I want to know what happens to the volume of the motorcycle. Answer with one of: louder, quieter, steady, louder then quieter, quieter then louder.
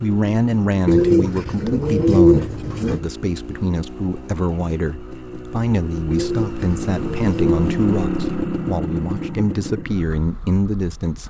louder then quieter.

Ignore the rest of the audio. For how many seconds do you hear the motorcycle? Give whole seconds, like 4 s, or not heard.
11 s.